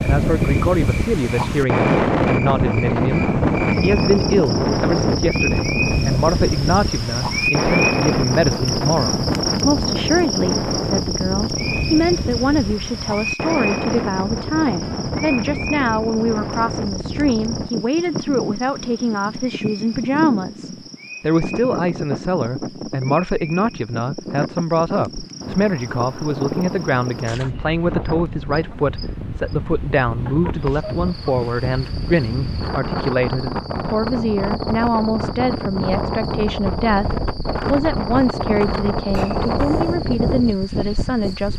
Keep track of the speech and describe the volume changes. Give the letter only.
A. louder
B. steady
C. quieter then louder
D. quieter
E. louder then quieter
B.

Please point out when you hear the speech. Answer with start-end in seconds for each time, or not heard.
0.0-41.5.